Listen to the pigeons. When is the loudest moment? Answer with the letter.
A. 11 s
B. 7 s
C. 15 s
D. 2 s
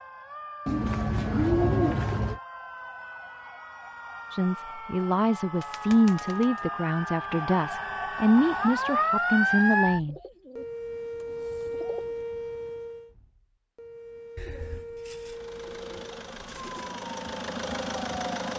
D.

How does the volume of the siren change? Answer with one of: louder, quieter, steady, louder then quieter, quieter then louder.
louder then quieter.